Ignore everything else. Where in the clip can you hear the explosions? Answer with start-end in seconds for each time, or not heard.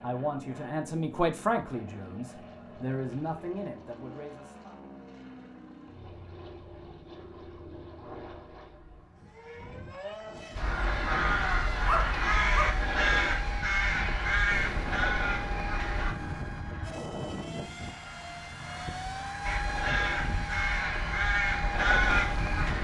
14.5-16.4.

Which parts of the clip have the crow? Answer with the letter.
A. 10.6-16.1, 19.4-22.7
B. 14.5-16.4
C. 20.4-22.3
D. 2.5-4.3
A.